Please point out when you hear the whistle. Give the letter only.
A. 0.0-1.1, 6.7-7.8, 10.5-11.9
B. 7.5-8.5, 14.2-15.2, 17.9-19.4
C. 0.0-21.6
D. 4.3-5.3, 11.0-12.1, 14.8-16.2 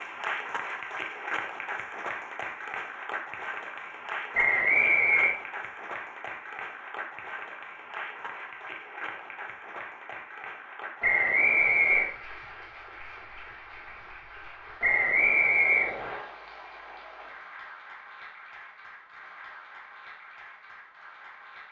D.